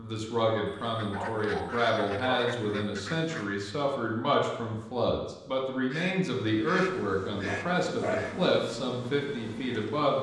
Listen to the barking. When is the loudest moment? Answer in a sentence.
The loudest moment of the barking is at 8 seconds.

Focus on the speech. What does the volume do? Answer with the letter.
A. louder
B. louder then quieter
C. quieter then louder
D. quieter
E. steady
E.